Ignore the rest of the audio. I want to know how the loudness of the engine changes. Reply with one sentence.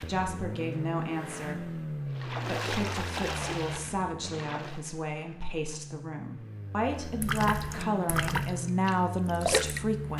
The volume of the engine goes down, then up.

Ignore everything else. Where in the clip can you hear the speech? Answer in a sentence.
You can hear the speech from 0.1 to 10.1 s.